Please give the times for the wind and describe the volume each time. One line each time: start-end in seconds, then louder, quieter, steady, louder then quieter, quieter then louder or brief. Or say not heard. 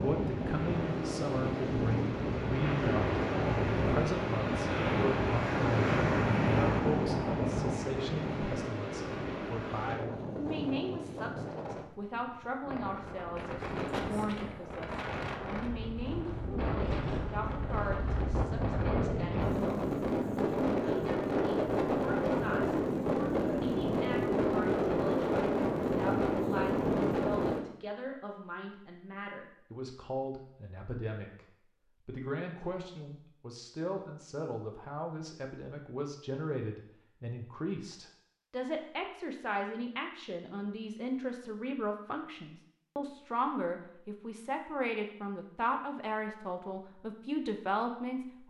0.0-27.6 quieter then louder.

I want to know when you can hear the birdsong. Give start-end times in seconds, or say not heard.
not heard.